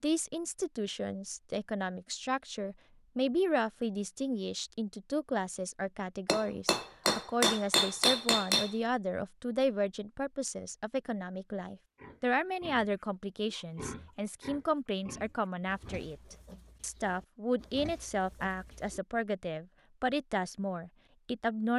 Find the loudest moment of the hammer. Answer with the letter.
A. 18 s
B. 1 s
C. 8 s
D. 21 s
C.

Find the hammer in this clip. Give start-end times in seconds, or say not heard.
6.2-8.8.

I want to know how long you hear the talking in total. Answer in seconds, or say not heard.
22 s.